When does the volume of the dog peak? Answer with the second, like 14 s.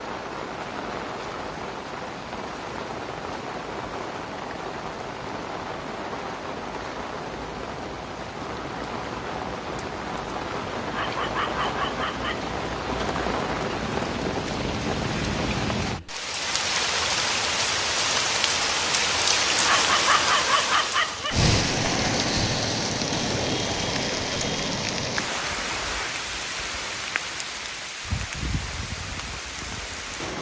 20 s.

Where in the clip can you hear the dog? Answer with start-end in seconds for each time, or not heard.
10.8-12.5, 19.6-21.5.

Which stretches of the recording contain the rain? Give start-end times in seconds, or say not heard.
0.0-30.3.